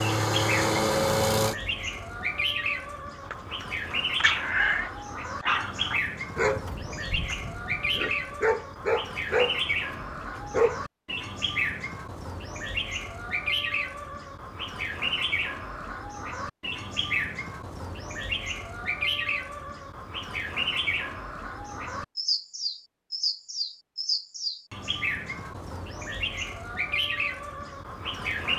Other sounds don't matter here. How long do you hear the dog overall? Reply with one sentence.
The dog can be heard for 8 seconds in total.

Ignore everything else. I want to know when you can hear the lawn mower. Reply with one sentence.
You can hear the lawn mower from 0.0 to 1.6 s.